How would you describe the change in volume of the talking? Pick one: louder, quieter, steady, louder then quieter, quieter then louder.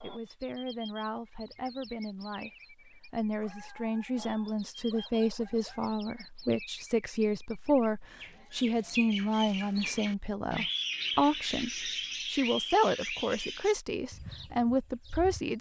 louder.